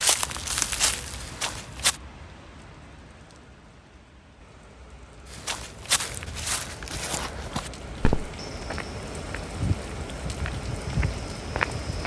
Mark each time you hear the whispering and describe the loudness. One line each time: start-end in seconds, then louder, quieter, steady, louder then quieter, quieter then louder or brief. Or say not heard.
not heard.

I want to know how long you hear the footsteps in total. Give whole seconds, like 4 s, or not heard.
9 s.